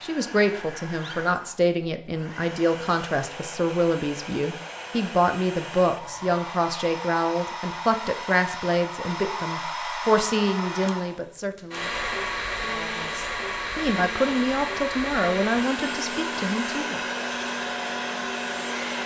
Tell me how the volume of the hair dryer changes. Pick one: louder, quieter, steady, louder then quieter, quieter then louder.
louder.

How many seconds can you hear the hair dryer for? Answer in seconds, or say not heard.
19 s.